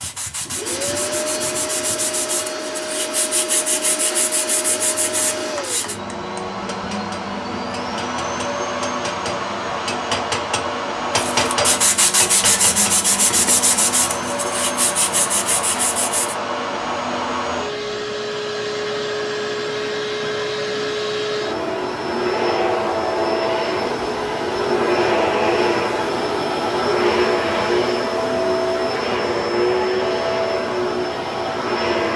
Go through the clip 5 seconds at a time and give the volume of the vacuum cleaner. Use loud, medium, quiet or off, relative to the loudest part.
medium, medium, medium, medium, loud, loud, loud.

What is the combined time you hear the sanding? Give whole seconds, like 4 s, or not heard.
11 s.